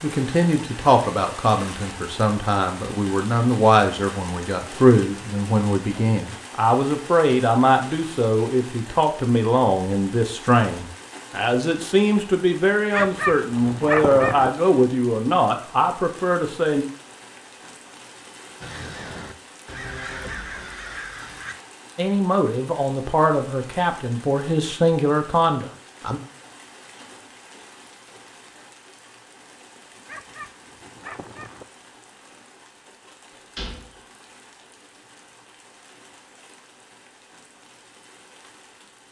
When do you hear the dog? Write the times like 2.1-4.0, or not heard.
12.9-14.5, 30.1-31.6.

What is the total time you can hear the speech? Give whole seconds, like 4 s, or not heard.
21 s.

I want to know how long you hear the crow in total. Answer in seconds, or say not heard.
3 s.